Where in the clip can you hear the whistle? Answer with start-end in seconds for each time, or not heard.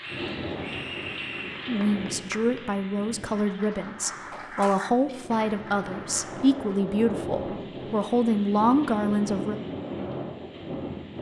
0.0-1.6.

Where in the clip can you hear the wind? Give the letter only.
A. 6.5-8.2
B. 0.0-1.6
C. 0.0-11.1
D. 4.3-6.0
C.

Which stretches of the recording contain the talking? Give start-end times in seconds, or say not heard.
1.6-9.6.